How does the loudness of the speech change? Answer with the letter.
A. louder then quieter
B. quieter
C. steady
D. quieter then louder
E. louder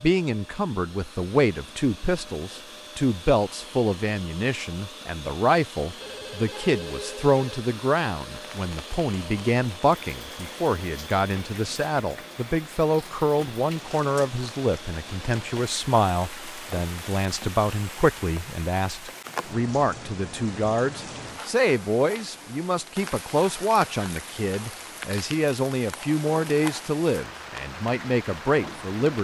C.